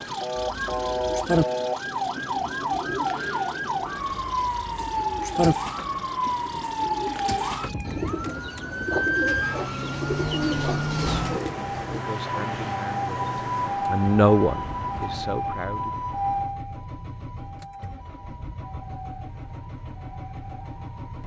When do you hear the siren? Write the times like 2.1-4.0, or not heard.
0.0-21.2.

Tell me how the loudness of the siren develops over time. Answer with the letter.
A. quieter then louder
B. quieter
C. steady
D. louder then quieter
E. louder
B.